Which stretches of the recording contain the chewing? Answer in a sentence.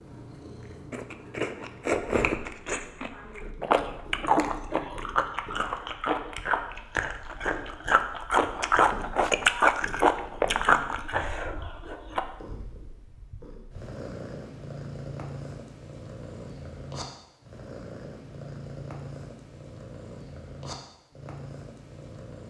You can hear the chewing from 0.9 to 12.2 s.